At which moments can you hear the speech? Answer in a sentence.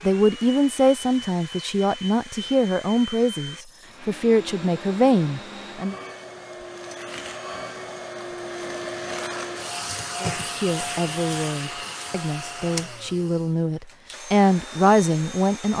The speech can be heard from 0.0 to 6.0 s and from 10.2 to 15.7 s.